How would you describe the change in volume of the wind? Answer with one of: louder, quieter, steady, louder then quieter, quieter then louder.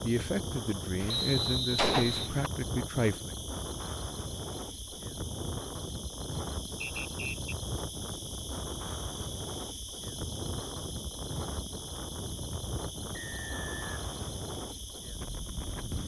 steady.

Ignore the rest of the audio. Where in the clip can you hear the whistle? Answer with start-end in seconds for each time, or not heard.
1.1-2.3, 6.8-7.5, 13.1-14.4.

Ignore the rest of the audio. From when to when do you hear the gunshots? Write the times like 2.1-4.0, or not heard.
1.0-2.5.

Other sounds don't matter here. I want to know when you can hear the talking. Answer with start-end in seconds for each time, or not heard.
0.0-3.4.